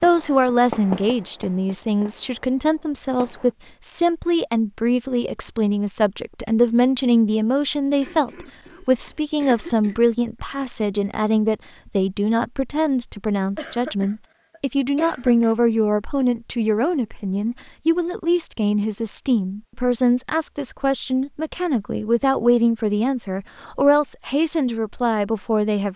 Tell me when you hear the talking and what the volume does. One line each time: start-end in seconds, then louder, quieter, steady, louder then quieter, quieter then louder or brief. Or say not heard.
0.0-25.9 steady.